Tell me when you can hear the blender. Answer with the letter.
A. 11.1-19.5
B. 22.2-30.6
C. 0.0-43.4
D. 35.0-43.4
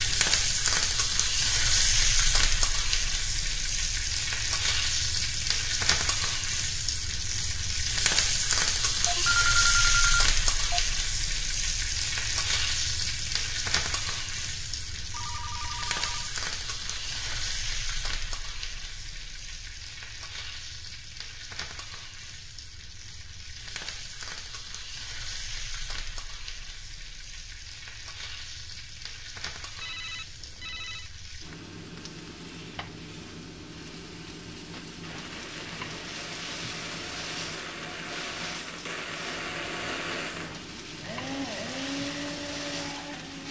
D.